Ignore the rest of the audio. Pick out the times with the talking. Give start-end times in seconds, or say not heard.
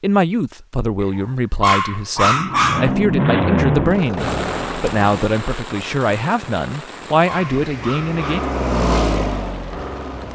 0.0-8.4.